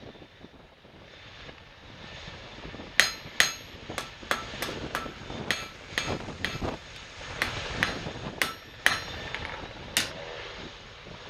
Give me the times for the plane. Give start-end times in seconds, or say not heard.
0.0-11.2.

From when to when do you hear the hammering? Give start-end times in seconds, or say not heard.
3.0-10.1.